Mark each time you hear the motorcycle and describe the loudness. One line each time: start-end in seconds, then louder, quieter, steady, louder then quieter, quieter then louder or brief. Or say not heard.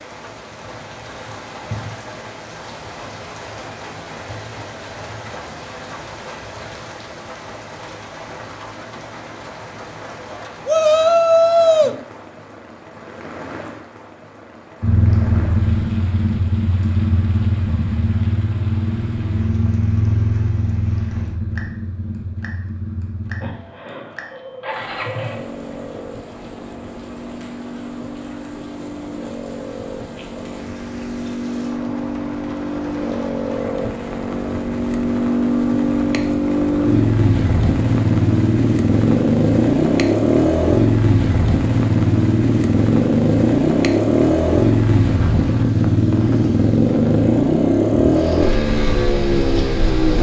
14.8-50.1 quieter then louder.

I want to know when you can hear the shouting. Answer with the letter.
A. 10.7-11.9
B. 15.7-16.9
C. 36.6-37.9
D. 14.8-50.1
A.